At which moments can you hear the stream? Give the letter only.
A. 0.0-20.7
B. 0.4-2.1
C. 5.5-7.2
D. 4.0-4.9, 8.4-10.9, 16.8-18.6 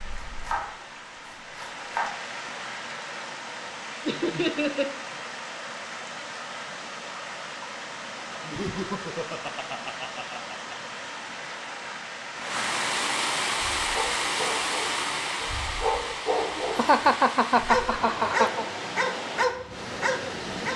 A.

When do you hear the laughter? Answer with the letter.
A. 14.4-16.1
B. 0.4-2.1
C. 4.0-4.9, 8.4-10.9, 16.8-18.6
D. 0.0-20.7
C.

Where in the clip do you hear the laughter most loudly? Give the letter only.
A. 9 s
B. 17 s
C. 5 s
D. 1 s
B.